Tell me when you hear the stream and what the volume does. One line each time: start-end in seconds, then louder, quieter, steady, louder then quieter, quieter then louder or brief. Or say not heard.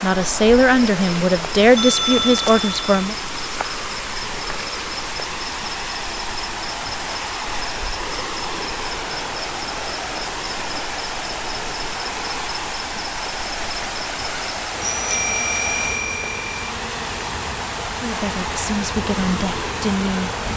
0.0-20.5 steady.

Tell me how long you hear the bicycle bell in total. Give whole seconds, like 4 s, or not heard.
3 s.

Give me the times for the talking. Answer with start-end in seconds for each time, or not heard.
0.0-3.1, 18.0-20.4.